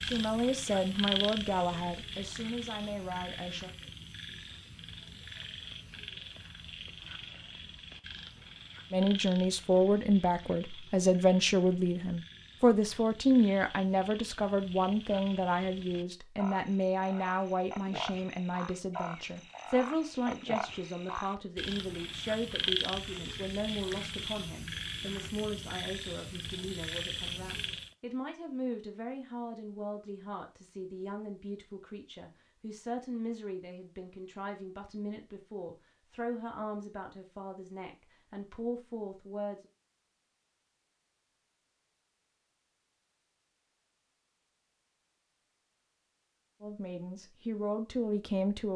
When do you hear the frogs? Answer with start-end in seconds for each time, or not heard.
0.0-27.9.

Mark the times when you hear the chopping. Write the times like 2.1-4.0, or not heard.
not heard.